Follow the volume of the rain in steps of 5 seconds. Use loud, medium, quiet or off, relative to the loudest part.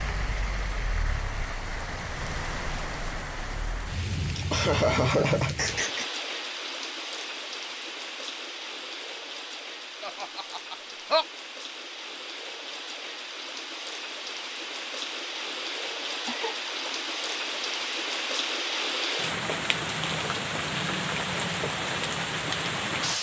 medium, medium, medium, loud, loud.